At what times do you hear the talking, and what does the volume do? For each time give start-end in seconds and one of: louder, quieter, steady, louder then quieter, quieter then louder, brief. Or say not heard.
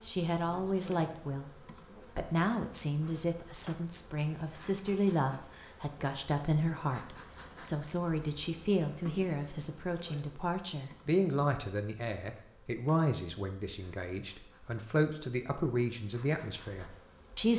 0.0-1.5 brief
2.1-17.5 steady.